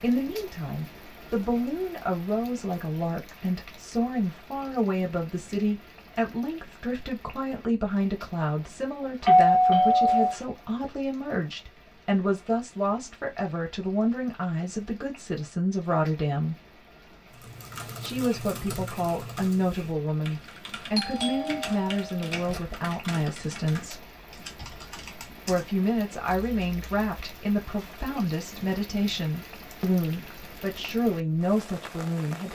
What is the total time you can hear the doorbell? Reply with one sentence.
The doorbell can be heard for 3 seconds in total.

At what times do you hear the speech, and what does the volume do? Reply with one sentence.
The speech can be heard from 0.0 to 16.6 s, at a steady volume; from 18.0 to 24.1 s, at a steady volume; and from 25.4 to 32.4 s, at a steady volume.